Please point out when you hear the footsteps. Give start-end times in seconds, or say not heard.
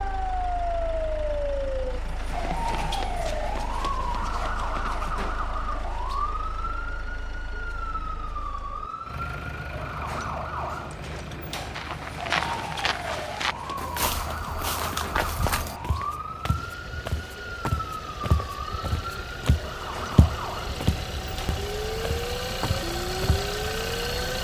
11.7-23.4.